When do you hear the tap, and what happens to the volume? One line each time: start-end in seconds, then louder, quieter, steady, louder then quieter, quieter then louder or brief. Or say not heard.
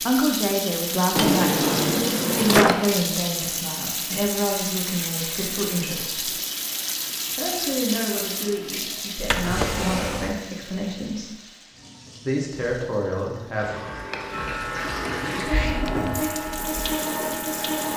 0.0-17.9 quieter then louder.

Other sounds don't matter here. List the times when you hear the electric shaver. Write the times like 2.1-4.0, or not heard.
14.3-17.9.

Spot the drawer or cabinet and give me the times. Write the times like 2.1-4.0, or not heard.
1.1-2.9, 9.2-10.3, 15.1-16.3.